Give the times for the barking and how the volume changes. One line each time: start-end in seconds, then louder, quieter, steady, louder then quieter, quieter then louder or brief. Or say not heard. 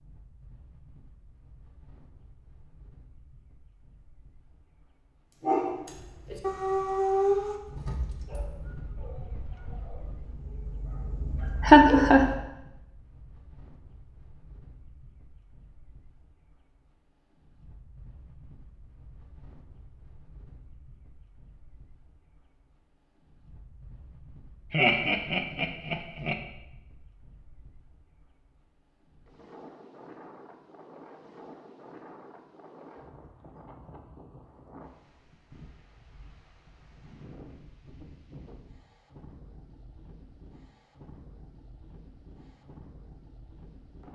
5.4-12.4 quieter then louder.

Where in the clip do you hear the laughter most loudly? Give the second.
12 s.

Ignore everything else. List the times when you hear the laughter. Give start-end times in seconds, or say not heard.
11.7-12.2, 24.7-26.4.